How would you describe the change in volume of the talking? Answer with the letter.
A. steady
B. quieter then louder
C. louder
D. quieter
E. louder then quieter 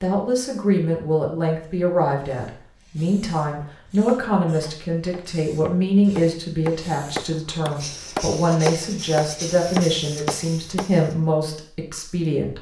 A.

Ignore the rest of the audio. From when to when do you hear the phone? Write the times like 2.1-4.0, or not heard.
not heard.